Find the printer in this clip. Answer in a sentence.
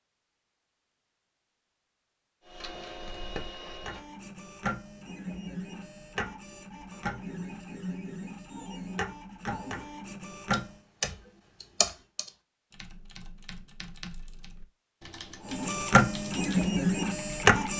You can hear the printer from 2.5 to 10.8 s and from 15.4 to 17.7 s.